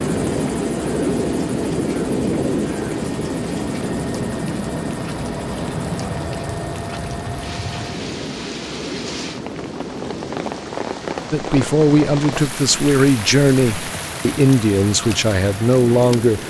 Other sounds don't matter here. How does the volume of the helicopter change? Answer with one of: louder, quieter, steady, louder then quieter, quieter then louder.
quieter.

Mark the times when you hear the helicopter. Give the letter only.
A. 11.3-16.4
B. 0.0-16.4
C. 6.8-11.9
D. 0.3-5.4
B.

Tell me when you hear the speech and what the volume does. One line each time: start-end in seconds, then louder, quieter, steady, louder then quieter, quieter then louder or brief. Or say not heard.
11.3-16.4 steady.